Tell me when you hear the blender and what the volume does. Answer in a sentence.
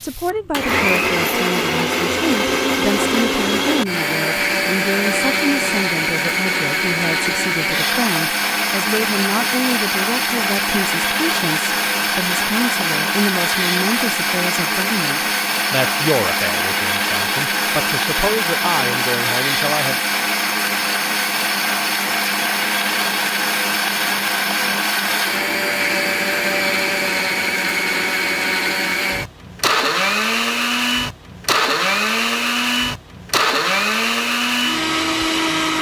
The blender can be heard from 0.0 to 35.7 s, at a steady volume.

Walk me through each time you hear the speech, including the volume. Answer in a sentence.
You can hear the speech from 0.0 to 19.9 s, at a steady volume.